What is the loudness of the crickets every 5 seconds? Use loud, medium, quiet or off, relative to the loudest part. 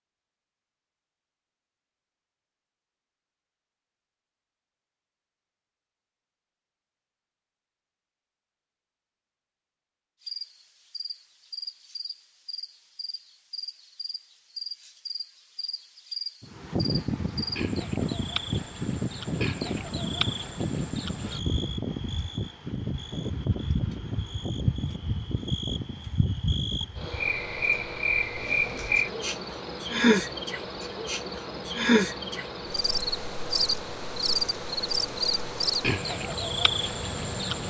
off, off, quiet, medium, medium, loud, loud, loud.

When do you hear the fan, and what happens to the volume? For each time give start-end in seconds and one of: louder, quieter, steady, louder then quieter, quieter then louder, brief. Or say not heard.
16.4-37.6 quieter.